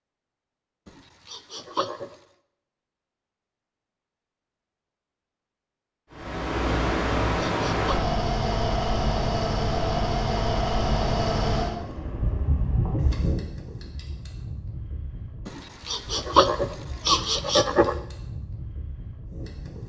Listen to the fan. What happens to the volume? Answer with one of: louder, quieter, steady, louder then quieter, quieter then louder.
quieter.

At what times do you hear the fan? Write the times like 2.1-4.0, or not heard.
6.1-19.8.